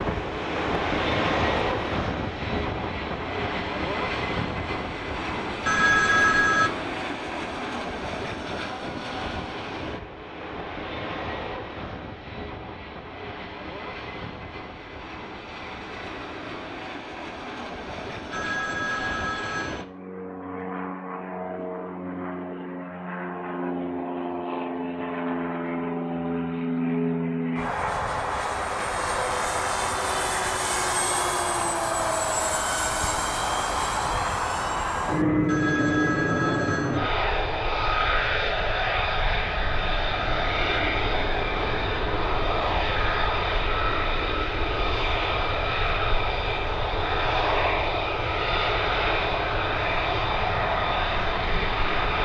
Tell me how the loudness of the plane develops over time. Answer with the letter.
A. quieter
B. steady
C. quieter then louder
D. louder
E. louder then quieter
C.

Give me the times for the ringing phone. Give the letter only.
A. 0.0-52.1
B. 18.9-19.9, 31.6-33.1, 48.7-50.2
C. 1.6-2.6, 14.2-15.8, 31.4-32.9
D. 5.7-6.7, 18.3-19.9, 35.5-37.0
D.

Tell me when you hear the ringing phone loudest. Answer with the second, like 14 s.
6 s.